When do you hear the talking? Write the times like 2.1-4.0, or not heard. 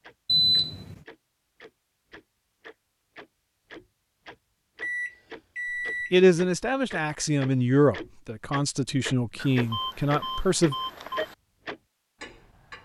6.1-10.8.